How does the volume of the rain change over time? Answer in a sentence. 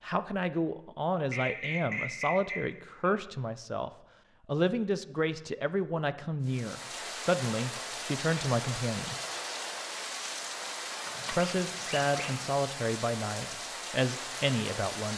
The loudness of the rain stays about the same.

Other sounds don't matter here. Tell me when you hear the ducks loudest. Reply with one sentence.
The loudest moment of the ducks is at 2 seconds.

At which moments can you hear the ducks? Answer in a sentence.
The ducks can be heard from 1.2 to 3.1 s and from 11.1 to 12.5 s.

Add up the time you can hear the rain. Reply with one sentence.
The rain can be heard for 9 seconds in total.